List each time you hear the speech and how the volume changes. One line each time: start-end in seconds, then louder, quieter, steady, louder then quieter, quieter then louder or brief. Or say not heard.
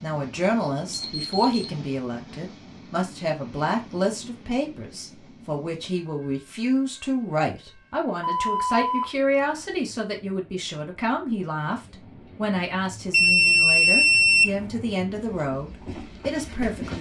0.0-16.9 steady.